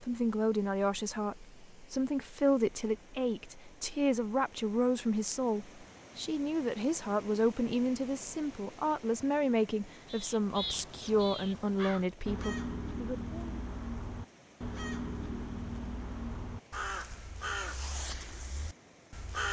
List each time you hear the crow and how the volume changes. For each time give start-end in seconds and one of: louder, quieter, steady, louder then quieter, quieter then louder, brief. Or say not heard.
10.0-19.4 steady.